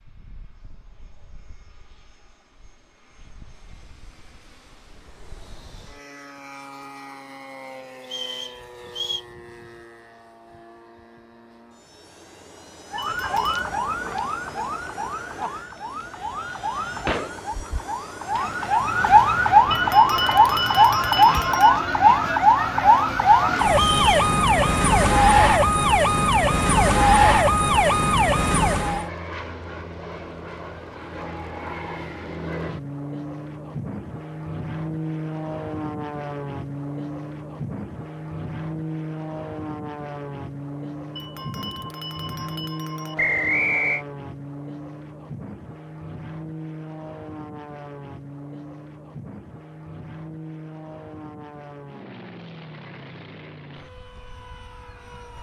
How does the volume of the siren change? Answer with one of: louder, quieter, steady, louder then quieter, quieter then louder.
louder.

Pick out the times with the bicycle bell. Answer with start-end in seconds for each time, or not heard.
13.0-13.7, 19.7-21.7, 41.1-43.1.